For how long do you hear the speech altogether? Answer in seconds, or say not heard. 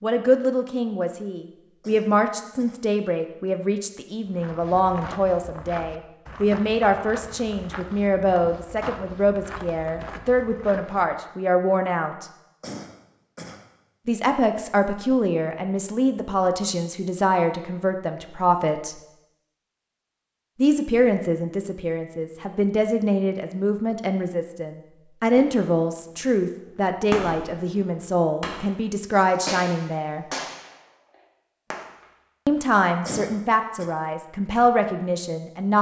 30 s.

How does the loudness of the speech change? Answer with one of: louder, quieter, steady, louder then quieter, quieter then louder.
steady.